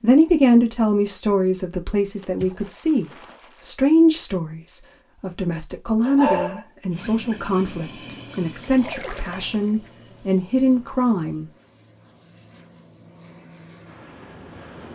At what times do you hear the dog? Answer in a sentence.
The dog can be heard from 6.0 to 7.6 s.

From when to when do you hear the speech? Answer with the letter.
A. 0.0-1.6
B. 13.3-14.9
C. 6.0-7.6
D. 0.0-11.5
D.